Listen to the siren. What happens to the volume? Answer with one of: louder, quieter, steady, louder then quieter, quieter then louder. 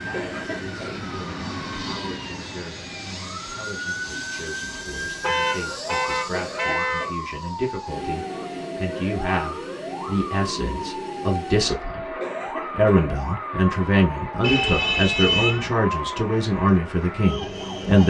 steady.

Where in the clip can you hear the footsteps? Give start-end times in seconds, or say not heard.
not heard.